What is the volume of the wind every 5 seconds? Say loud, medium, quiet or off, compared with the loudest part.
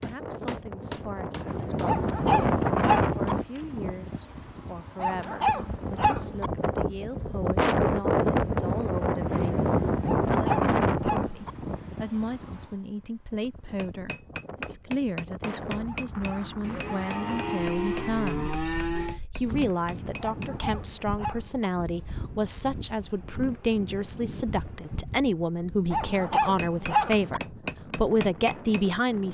loud, loud, loud, quiet, quiet, quiet.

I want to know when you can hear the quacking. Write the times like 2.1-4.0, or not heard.
not heard.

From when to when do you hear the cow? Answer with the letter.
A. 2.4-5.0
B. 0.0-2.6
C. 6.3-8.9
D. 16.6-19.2
D.